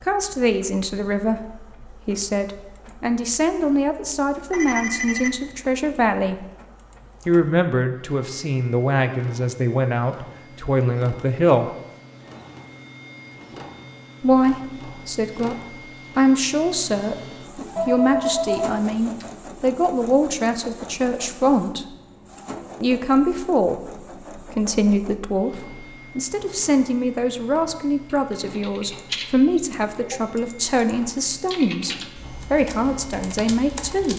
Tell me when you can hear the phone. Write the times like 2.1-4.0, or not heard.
4.5-5.7, 17.8-19.2.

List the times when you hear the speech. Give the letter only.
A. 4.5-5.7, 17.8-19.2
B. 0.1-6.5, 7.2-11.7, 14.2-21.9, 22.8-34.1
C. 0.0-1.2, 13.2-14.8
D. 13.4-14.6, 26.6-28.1
B.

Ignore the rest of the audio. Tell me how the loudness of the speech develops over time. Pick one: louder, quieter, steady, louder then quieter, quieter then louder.
steady.